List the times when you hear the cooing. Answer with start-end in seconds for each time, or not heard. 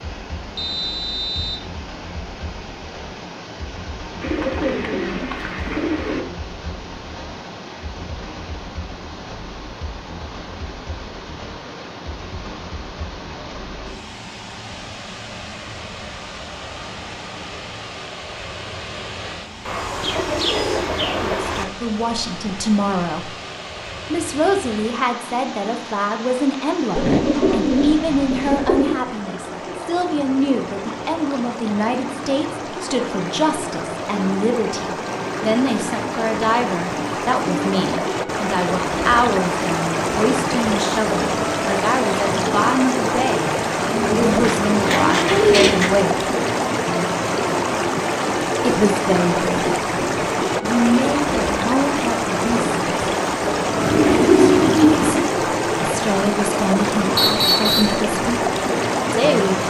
4.2-6.2, 19.6-21.6, 26.9-28.9, 44.0-45.9, 53.8-55.3.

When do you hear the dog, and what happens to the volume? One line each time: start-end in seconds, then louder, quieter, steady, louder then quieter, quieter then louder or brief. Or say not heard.
not heard.